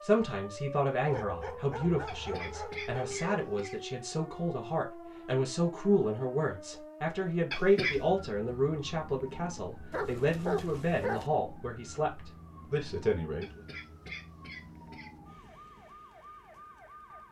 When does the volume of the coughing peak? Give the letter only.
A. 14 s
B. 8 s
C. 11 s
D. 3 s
B.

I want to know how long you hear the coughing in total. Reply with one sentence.
The coughing can be heard for 4 seconds in total.